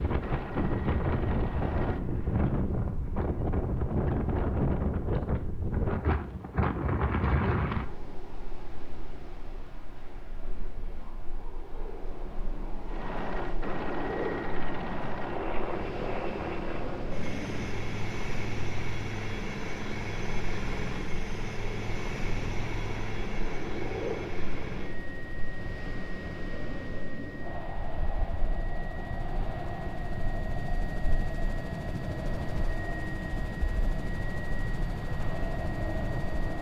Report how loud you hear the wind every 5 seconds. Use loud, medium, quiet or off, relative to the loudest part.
loud, loud, medium, medium, medium, medium, medium, medium.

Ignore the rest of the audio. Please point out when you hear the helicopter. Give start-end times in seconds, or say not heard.
0.0-2.9, 12.8-36.5.